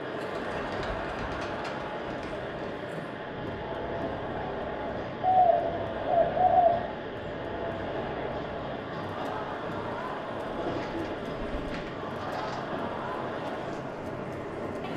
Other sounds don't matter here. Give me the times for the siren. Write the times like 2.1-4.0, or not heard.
not heard.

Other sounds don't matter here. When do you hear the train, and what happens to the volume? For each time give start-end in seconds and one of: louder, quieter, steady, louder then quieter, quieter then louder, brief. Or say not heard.
0.0-14.9 steady.